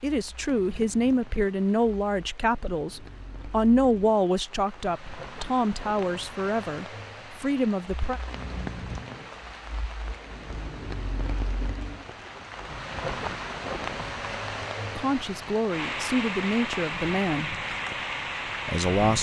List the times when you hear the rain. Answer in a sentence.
You can hear the rain from 0.0 to 19.1 s.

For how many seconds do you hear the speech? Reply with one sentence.
The speech can be heard for 11 seconds in total.